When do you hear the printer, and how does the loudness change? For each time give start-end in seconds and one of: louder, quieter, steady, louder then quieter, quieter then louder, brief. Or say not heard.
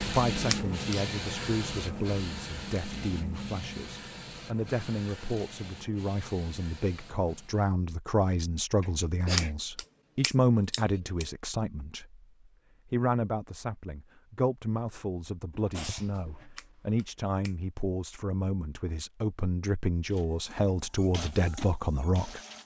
0.0-7.8 quieter
20.1-22.6 brief.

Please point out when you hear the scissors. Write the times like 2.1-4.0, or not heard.
0.5-1.0, 9.3-11.2, 16.6-17.6.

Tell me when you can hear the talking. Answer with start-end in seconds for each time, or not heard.
0.1-12.2, 12.8-22.4.